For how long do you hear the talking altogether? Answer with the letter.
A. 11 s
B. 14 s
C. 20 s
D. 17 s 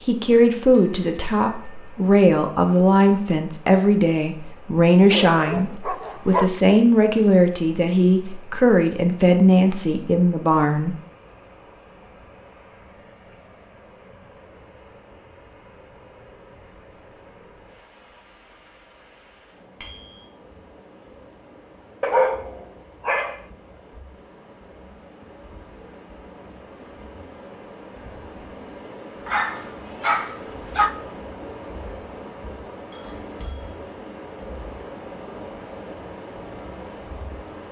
A.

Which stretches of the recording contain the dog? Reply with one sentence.
The dog can be heard from 5.1 to 6.5 s, from 22.0 to 23.4 s and from 29.2 to 30.9 s.